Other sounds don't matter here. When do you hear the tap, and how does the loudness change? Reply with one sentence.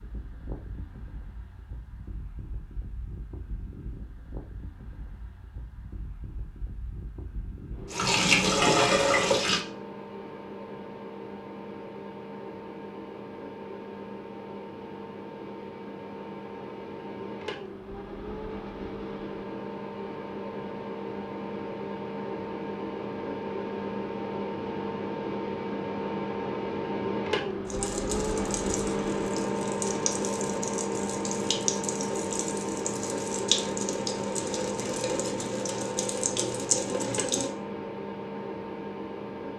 You can hear the tap briefly from 7.9 to 9.7 s; and from 27.6 to 37.5 s, getting louder.